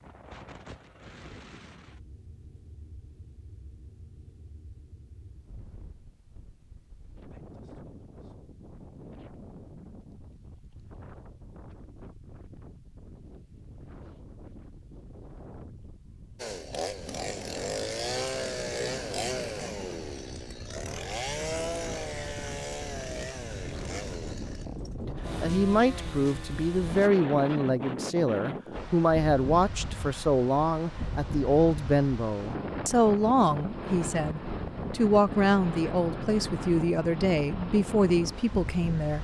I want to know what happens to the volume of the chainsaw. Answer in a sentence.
The volume of the chainsaw goes down.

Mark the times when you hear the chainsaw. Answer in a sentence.
You can hear the chainsaw from 16.4 to 27.1 s.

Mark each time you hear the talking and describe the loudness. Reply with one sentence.
The talking can be heard from 25.0 to 39.1 s, at a steady volume.